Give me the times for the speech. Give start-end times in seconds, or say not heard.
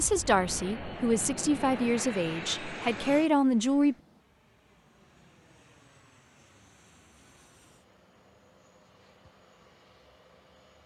0.0-4.0.